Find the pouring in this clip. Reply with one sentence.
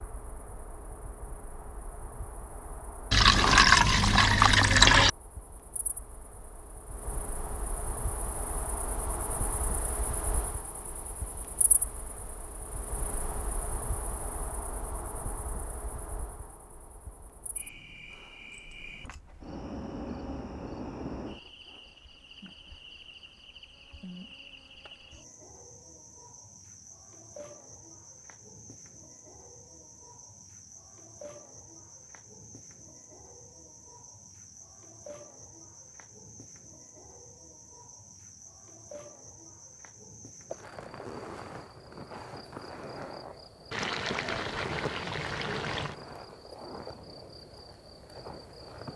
The pouring can be heard from 3.1 to 5.1 s and from 43.7 to 46.0 s.